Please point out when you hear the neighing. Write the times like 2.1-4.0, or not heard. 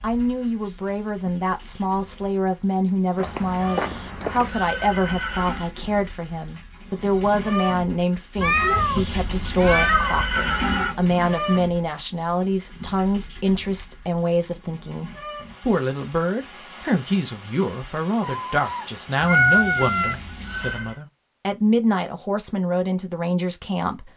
3.5-5.7, 8.3-10.9, 19.2-21.0.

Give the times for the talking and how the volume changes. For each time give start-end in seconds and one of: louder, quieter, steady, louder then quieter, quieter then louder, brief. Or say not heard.
0.0-24.1 steady.